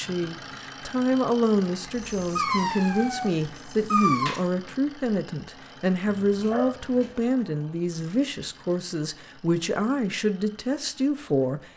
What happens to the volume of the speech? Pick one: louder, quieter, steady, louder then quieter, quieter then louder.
steady.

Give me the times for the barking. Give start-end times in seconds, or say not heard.
2.0-4.3, 6.0-7.2.